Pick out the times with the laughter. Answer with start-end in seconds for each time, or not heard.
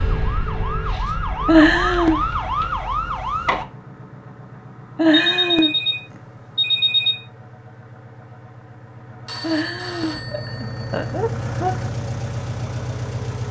1.4-2.2, 5.0-5.7, 9.4-11.9.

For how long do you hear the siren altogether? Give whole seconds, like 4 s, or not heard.
4 s.